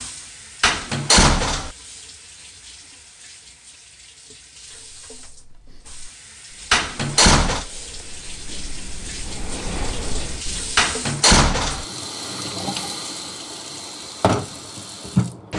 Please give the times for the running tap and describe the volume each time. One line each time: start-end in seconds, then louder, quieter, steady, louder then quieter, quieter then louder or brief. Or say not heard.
0.0-15.5 louder.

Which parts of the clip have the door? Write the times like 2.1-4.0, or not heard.
0.6-1.7, 6.7-7.7, 10.8-11.8.